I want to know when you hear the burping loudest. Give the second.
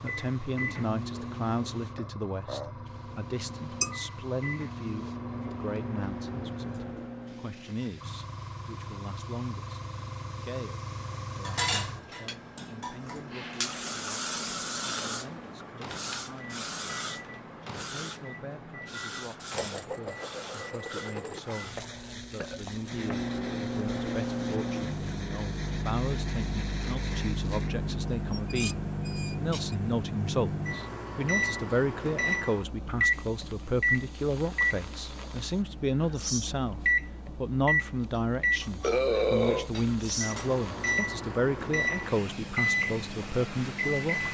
39 s.